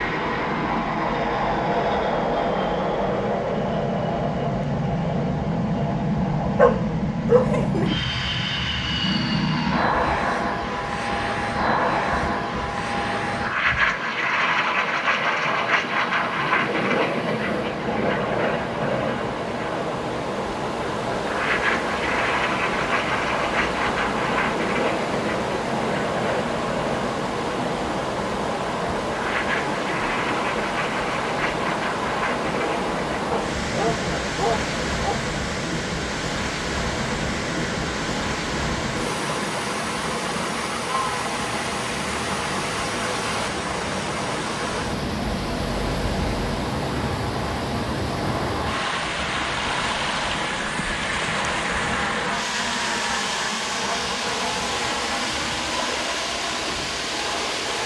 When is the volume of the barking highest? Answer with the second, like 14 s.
7 s.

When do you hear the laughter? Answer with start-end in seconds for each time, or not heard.
not heard.